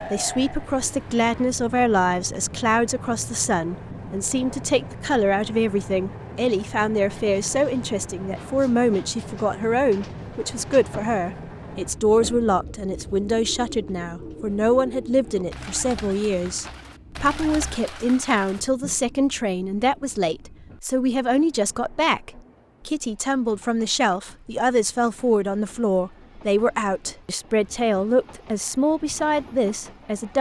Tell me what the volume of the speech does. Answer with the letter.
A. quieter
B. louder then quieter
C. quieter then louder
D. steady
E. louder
D.